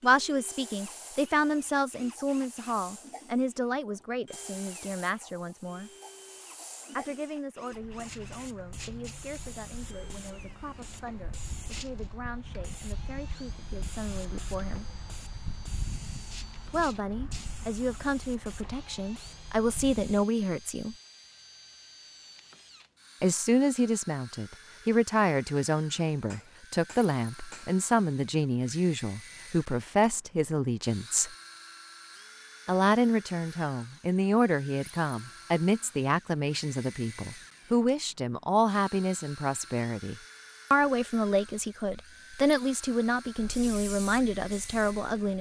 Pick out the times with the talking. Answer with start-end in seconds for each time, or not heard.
0.0-5.9, 7.0-14.8, 16.7-20.9, 23.2-31.3, 32.6-45.3.